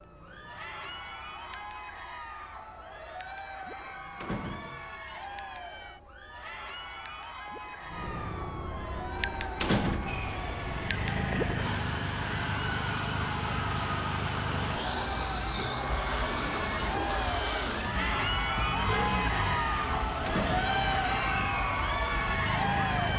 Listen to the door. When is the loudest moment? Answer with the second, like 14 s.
10 s.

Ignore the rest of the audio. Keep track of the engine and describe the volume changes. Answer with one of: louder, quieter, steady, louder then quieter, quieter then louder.
steady.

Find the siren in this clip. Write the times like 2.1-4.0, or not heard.
0.0-23.1.